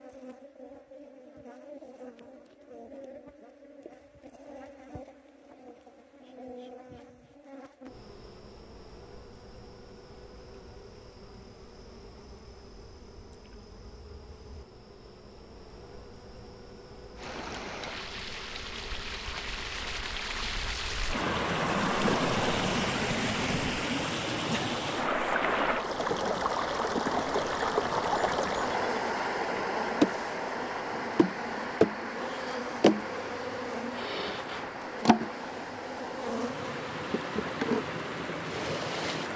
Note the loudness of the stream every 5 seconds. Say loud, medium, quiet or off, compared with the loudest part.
off, off, off, medium, loud, loud, medium, medium.